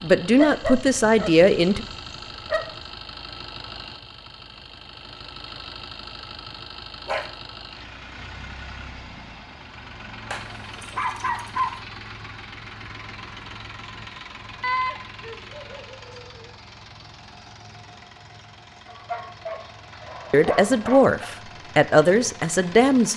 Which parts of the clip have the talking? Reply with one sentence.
The talking can be heard from 0.0 to 1.9 s and from 20.3 to 23.1 s.